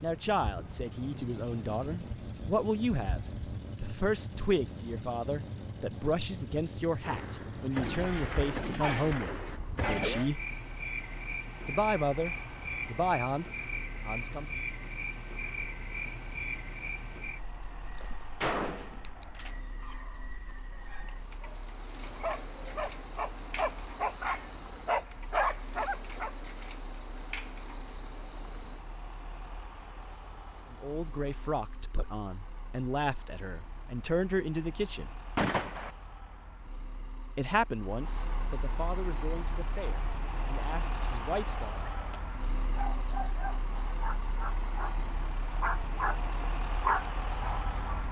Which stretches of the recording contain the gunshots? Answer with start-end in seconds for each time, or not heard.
7.0-10.3, 18.4-19.6, 35.4-36.0.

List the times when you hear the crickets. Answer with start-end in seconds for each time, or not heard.
0.0-31.6.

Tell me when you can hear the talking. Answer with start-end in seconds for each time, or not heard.
0.0-10.4, 11.7-14.6, 30.7-35.1, 37.4-41.9.